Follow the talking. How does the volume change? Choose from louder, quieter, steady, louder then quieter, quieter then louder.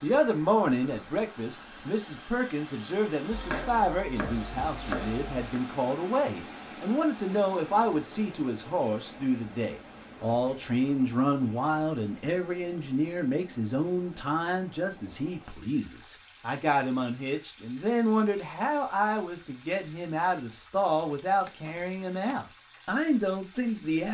steady.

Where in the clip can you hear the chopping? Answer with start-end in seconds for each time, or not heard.
3.3-5.6, 21.4-22.4.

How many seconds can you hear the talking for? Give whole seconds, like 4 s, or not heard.
24 s.